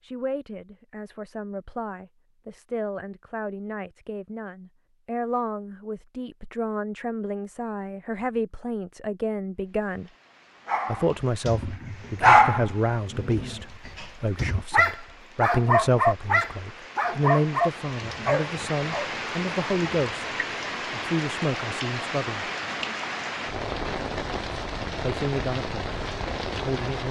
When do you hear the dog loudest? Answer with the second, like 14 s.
12 s.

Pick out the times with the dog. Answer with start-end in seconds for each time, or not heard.
10.7-19.1.